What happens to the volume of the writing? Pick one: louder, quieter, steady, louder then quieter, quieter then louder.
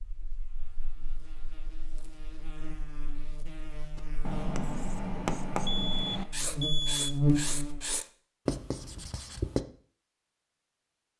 steady.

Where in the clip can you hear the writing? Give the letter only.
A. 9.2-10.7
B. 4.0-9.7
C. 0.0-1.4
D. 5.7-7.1
B.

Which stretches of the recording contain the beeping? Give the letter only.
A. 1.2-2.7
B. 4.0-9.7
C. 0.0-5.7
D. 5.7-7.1
D.